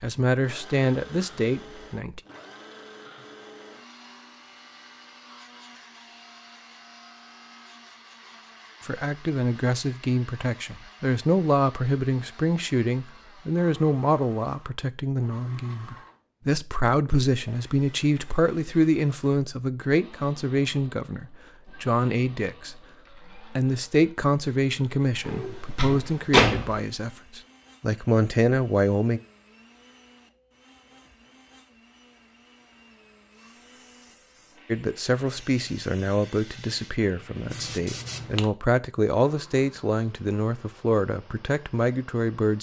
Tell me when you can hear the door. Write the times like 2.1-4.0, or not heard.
25.2-26.8.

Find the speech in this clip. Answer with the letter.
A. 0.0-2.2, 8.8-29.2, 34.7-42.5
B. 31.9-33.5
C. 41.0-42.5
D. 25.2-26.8
A.